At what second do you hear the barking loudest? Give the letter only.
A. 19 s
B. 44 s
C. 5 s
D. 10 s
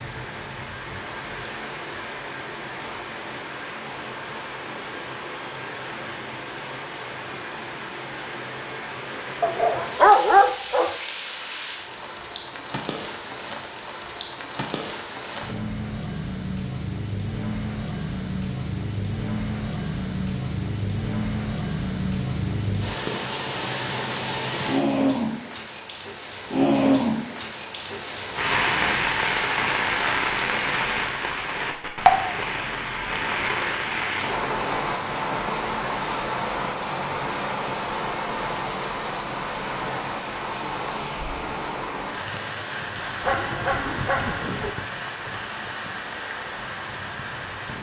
D.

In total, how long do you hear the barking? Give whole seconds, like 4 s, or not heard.
3 s.